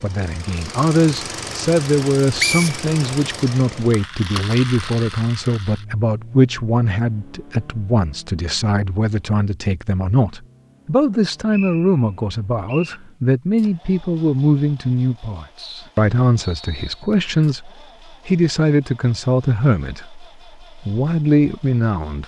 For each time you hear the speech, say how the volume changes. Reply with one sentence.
The speech can be heard from 0.0 to 22.2 s, at a steady volume.